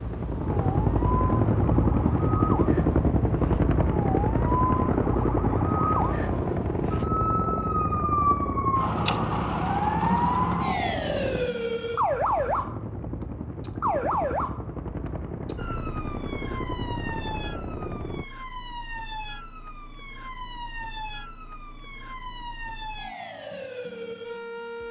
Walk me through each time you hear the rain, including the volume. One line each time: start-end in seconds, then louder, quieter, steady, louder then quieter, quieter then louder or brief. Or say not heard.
not heard.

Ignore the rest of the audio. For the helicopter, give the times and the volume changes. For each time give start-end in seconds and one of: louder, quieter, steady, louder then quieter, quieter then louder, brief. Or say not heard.
0.0-18.2 quieter.